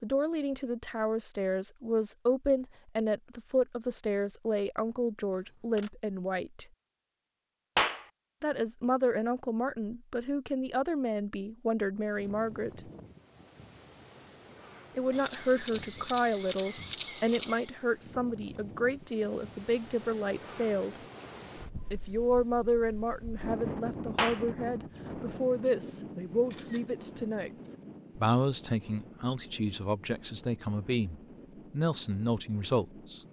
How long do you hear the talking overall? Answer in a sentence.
You can hear the talking for 28 seconds altogether.